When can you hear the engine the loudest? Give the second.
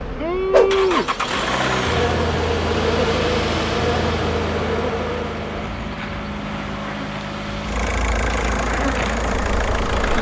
1 s.